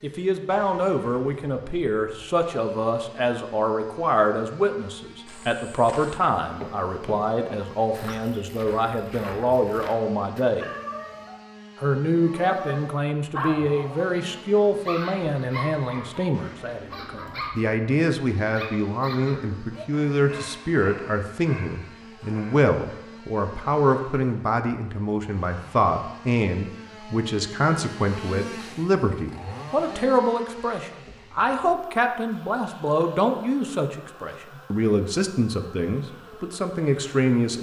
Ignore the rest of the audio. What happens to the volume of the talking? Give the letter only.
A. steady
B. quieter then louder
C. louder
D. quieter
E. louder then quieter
A.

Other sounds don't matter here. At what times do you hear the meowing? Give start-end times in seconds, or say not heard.
10.6-11.4.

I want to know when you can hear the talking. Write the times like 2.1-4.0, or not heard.
0.0-10.7, 11.8-37.5.